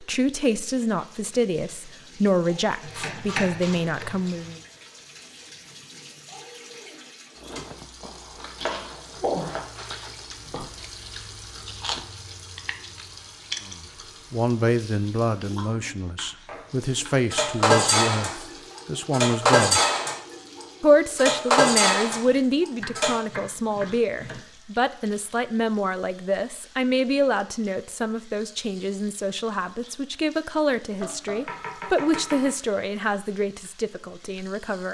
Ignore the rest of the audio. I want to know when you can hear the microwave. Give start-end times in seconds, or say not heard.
not heard.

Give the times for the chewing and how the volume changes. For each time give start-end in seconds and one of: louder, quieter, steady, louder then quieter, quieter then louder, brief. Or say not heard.
7.3-14.1 louder.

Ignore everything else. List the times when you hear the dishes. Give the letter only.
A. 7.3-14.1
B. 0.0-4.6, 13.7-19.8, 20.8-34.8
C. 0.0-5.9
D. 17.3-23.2
D.